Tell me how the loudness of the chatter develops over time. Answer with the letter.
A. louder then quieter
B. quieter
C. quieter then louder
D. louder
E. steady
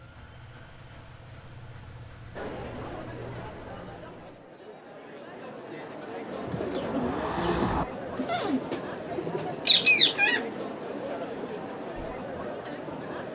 D.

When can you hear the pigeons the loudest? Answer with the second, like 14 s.
10 s.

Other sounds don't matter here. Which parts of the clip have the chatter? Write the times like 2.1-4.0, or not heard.
2.4-13.3.